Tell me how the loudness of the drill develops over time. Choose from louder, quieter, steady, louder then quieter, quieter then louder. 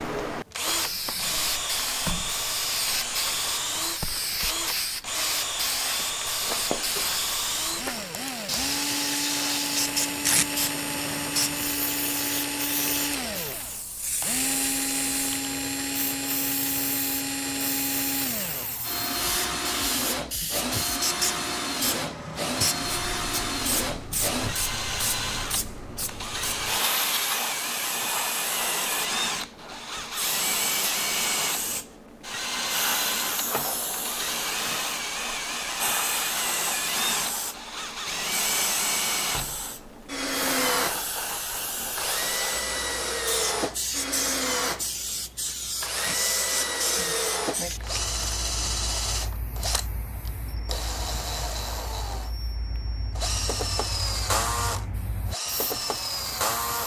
steady.